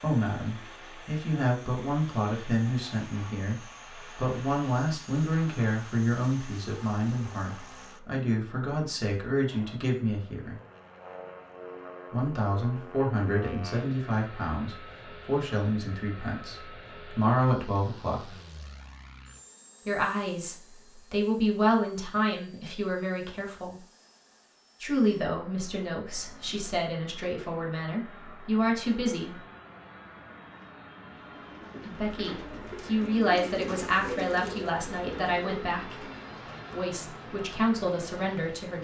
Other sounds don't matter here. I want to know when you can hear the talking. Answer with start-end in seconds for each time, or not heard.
0.0-10.6, 12.1-18.2, 19.9-23.8, 24.8-29.4, 31.9-36.0, 36.7-38.7.